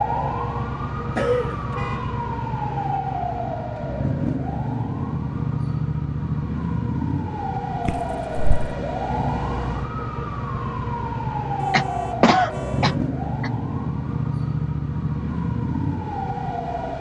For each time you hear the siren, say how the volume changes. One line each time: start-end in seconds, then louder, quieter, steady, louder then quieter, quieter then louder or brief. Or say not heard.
0.0-16.9 steady.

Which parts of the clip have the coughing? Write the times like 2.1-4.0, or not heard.
1.1-1.6, 7.8-8.8, 11.7-13.5.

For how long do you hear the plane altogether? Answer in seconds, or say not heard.
not heard.